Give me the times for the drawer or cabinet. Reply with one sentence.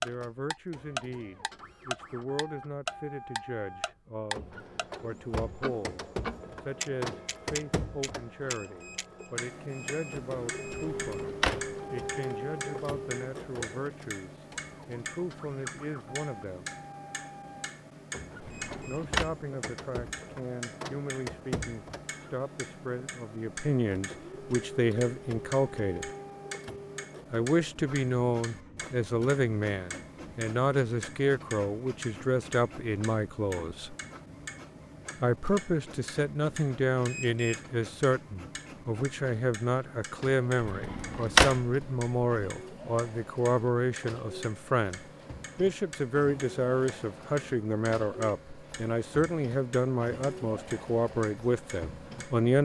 You can hear the drawer or cabinet from 10.8 to 11.7 s, from 18.4 to 19.2 s and from 40.6 to 41.6 s.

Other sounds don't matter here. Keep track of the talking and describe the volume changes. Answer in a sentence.
The loudness of the talking goes up.